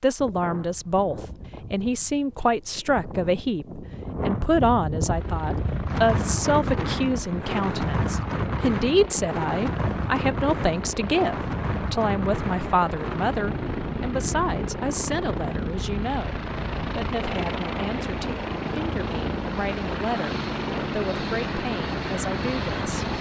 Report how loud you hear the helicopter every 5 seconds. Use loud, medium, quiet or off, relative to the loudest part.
off, medium, medium, loud, loud.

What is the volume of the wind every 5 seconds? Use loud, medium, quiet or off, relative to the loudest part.
medium, loud, loud, medium, medium.